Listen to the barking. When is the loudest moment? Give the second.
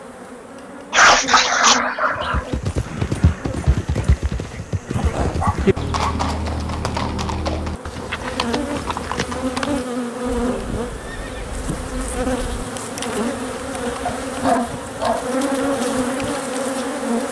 1 s.